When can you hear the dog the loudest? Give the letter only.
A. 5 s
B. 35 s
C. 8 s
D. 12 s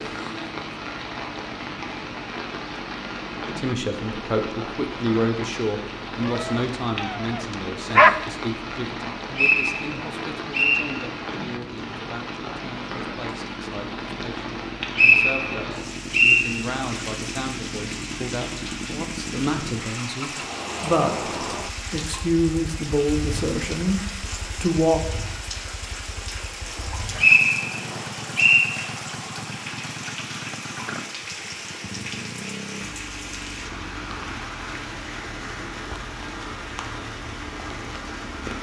C.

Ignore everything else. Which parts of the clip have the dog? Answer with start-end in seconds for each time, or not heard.
6.2-8.2.